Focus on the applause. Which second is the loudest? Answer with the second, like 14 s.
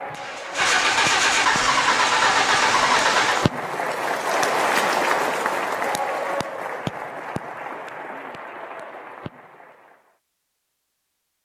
5 s.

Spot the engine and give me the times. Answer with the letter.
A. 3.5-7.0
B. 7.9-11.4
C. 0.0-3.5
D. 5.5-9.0
C.